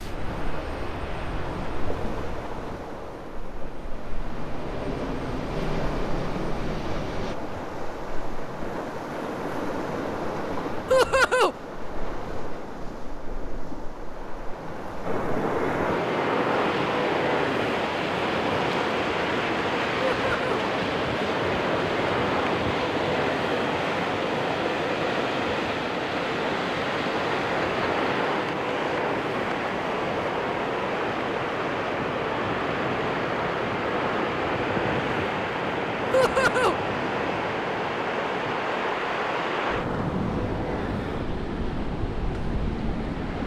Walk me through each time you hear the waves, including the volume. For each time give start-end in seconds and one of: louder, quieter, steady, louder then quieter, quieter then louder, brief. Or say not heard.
0.0-43.4 louder.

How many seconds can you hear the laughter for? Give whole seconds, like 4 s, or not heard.
2 s.